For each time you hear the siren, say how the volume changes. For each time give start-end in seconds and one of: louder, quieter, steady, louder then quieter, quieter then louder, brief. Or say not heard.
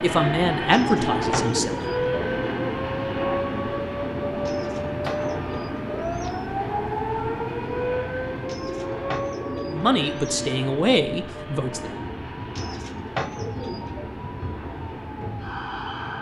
0.0-16.1 quieter.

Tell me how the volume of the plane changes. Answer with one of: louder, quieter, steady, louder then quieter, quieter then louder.
quieter.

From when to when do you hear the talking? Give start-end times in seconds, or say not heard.
0.0-1.8, 9.7-11.9.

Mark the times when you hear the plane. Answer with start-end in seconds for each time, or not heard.
0.0-16.1.